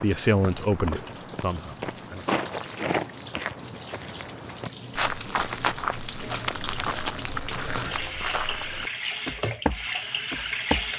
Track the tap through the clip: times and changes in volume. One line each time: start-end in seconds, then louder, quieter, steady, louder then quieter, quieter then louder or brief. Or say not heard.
0.0-10.9 louder.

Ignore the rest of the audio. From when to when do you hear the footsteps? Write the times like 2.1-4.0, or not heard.
0.0-10.9.